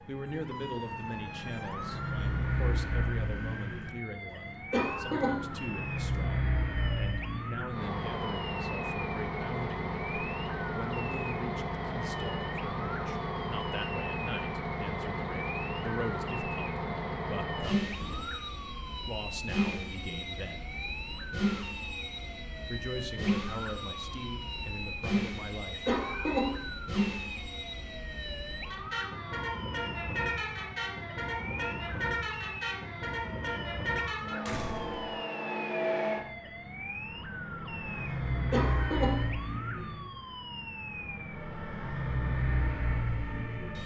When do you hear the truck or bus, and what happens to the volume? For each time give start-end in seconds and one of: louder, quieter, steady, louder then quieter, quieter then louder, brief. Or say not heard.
0.0-43.8 steady.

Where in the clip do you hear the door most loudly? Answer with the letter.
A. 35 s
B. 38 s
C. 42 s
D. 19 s
A.